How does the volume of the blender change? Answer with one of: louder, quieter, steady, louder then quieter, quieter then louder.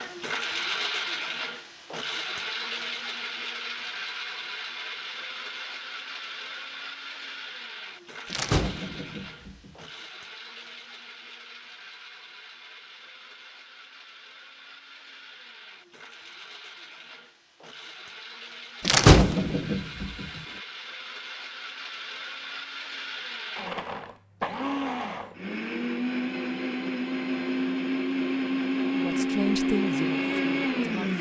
quieter then louder.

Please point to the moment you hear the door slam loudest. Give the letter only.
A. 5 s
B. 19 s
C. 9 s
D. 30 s
B.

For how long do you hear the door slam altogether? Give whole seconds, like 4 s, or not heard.
3 s.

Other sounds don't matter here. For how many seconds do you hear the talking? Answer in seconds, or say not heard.
2 s.